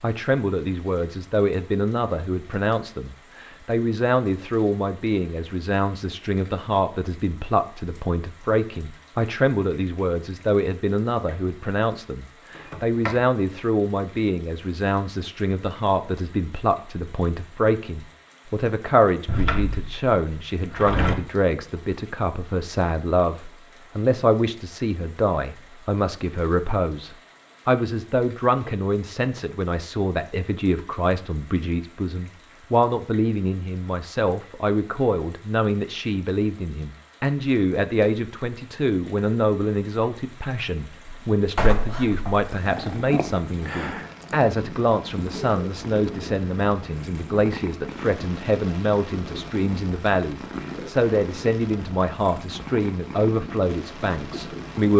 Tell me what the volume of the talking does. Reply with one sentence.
The volume of the talking stays about the same.